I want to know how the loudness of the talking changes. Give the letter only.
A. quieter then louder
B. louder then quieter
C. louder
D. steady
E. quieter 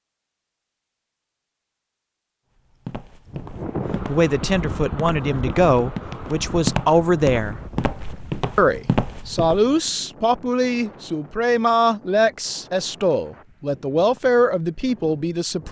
D.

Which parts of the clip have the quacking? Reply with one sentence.
The quacking can't be heard in this clip.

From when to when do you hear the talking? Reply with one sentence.
The talking can be heard from 4.0 to 7.6 s and from 8.6 to 15.6 s.